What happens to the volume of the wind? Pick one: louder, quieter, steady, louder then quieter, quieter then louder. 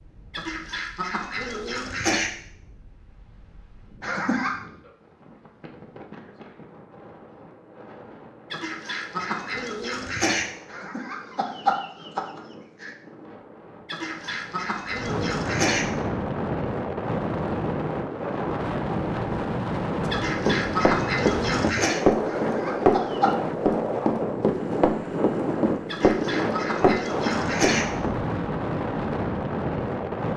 louder.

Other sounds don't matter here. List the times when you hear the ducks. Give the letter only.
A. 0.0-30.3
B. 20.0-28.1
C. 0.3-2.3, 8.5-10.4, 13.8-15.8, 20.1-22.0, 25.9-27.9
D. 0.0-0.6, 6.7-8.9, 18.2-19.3
C.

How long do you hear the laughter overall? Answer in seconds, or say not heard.
4 s.